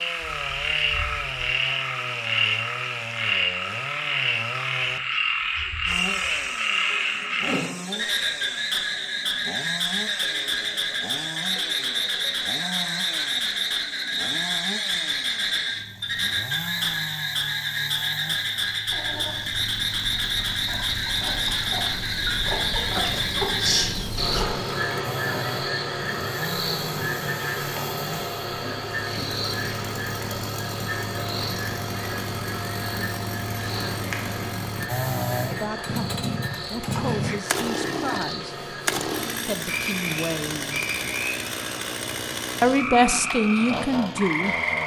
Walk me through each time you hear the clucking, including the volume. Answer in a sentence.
You can hear the clucking from 18.8 to 24.4 s, getting louder.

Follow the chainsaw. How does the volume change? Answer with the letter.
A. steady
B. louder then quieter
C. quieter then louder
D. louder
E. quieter
D.